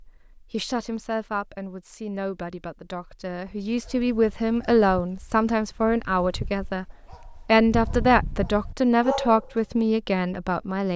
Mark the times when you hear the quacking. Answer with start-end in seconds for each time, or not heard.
not heard.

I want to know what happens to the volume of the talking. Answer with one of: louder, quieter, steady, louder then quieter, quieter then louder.
louder.